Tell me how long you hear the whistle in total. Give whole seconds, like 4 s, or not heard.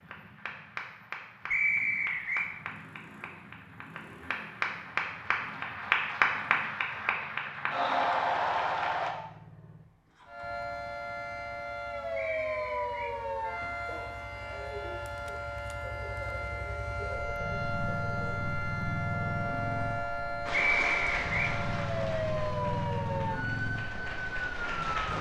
3 s.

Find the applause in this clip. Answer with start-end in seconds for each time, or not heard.
0.0-9.1, 20.4-25.1.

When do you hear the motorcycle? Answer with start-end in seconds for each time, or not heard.
0.0-25.1.